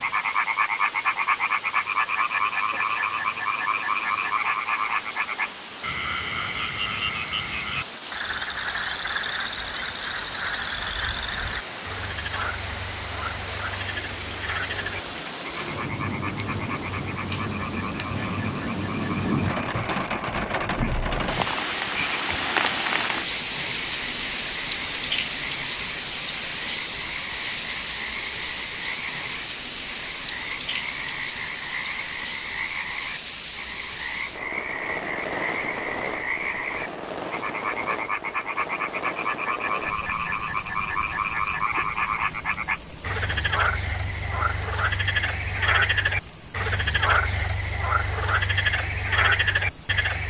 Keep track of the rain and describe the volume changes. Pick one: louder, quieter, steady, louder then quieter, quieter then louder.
louder then quieter.